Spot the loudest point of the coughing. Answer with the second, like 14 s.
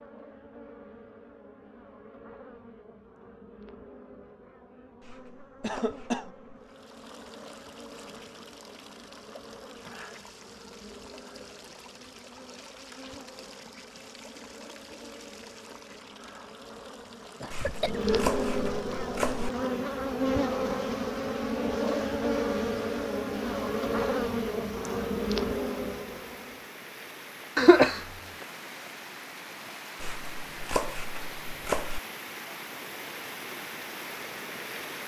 28 s.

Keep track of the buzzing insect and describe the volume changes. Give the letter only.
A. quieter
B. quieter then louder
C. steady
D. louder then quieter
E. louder
E.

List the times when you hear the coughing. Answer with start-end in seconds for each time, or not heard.
5.6-6.3, 17.4-18.3, 27.6-28.0.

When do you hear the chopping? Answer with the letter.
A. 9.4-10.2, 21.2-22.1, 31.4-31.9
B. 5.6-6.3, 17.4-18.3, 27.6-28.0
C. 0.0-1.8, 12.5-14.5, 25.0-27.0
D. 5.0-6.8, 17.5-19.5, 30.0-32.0
D.